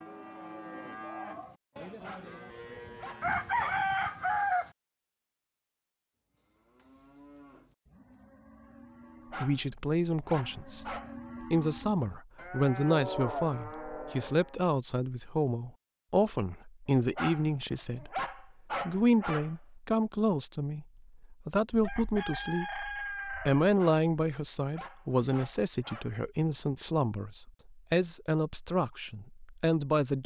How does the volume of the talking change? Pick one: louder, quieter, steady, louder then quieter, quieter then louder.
steady.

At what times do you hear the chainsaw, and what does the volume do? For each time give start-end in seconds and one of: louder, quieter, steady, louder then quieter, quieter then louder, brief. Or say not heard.
not heard.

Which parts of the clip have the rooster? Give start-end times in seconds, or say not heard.
3.2-4.7, 21.7-23.6.